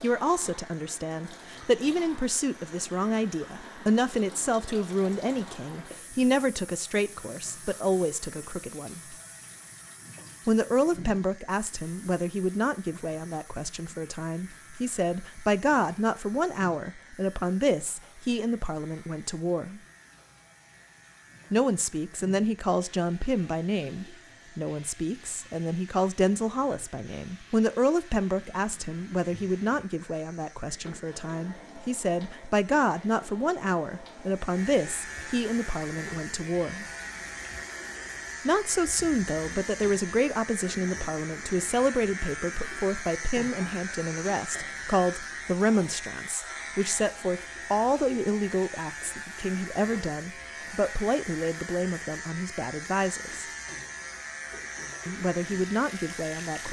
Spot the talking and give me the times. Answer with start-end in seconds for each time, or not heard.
0.0-9.2, 10.4-19.8, 21.5-36.9, 38.5-53.5, 55.0-56.6.